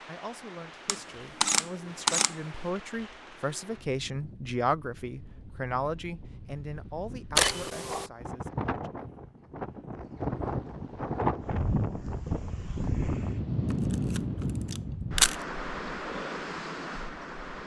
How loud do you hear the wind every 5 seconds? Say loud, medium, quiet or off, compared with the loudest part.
quiet, medium, loud, medium.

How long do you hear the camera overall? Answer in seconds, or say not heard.
4 s.